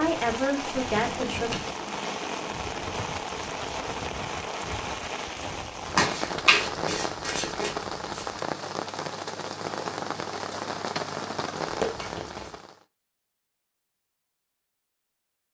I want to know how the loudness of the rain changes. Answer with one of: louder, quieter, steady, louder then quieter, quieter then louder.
steady.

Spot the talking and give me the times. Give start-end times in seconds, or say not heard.
0.0-1.6.